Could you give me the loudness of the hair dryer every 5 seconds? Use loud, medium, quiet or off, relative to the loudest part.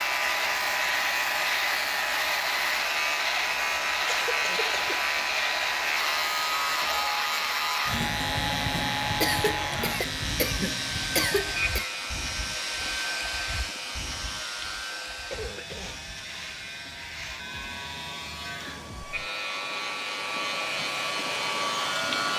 loud, loud, loud, medium, loud.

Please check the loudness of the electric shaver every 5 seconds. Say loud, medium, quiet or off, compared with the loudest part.
loud, loud, medium, medium, loud.